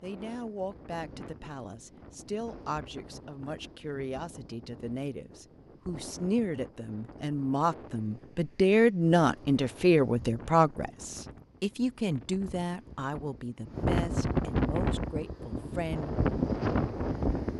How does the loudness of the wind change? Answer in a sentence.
The volume of the wind goes up.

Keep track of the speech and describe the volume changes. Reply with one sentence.
The volume of the speech goes up, then down.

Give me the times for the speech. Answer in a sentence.
The speech can be heard from 0.0 to 16.1 s.